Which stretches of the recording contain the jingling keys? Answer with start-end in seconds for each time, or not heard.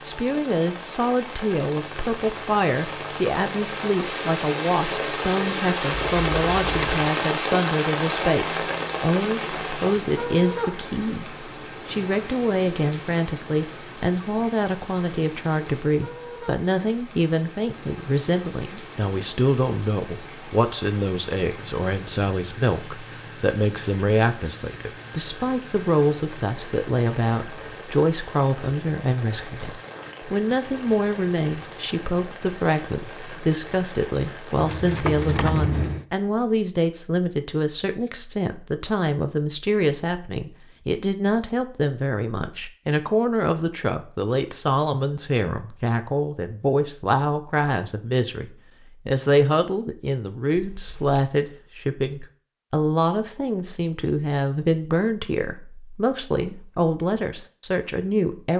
5.9-7.0, 34.5-36.0, 50.5-51.2.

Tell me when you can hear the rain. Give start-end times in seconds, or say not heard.
0.0-35.2.